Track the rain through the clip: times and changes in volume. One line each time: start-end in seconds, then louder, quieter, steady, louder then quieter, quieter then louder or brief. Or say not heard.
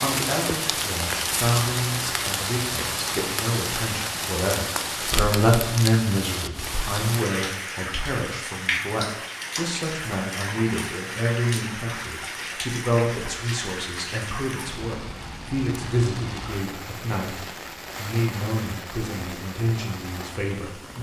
0.0-20.9 quieter.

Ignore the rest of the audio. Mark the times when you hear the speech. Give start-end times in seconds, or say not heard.
0.0-20.9.